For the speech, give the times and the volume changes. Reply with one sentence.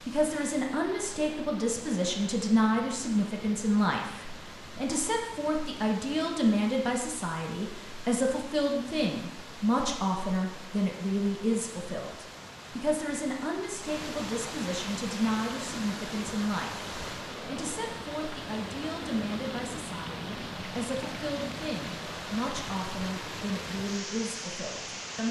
The speech can be heard from 0.1 to 25.2 s, getting quieter.